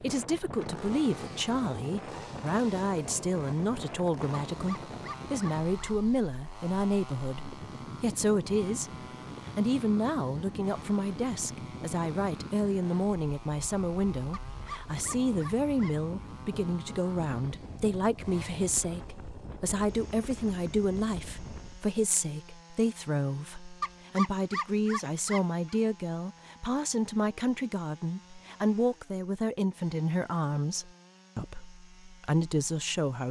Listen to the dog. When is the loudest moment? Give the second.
24 s.